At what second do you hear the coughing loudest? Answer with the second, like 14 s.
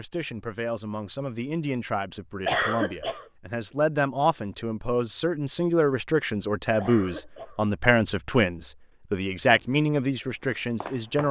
3 s.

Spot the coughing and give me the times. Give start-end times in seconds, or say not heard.
2.5-3.2, 6.8-7.6.